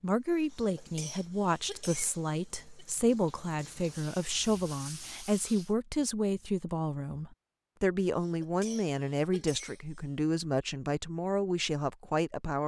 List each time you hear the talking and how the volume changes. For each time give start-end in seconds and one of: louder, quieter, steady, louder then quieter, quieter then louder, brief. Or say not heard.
0.0-12.6 steady.